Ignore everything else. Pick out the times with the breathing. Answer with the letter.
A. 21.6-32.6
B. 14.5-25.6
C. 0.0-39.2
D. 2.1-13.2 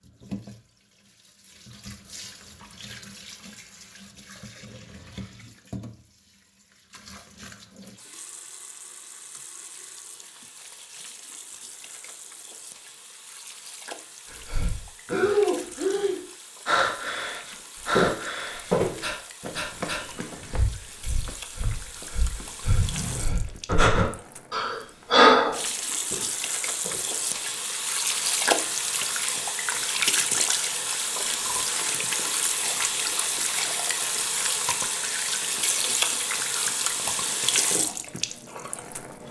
B.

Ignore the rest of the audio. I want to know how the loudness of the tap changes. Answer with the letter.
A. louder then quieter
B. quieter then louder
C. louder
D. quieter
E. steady
C.